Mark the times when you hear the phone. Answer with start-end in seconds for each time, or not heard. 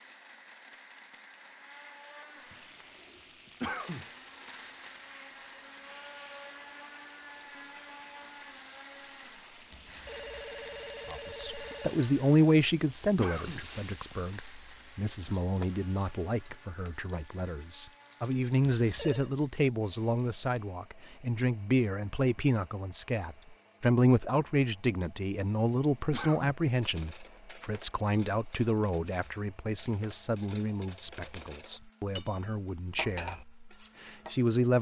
9.7-12.1, 18.8-19.3.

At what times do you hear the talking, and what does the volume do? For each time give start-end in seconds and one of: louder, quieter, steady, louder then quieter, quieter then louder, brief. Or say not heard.
11.1-34.7 quieter.